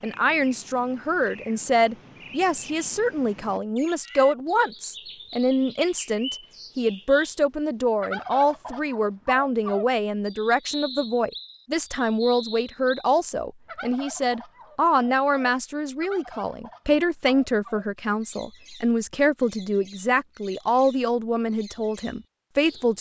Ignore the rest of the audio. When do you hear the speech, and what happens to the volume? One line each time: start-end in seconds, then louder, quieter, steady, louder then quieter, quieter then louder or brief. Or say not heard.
0.0-22.9 steady.